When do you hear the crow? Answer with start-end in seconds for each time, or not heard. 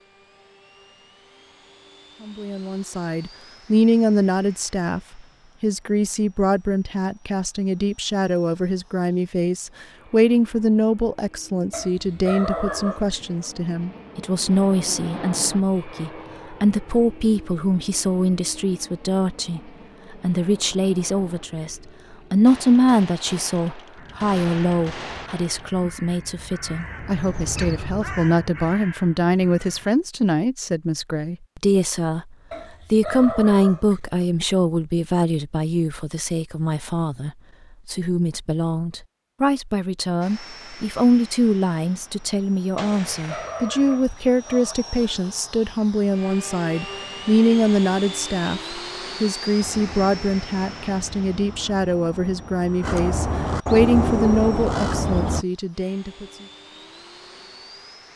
23.9-29.9, 49.6-55.5.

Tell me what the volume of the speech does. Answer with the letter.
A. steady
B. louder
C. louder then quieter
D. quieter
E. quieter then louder
A.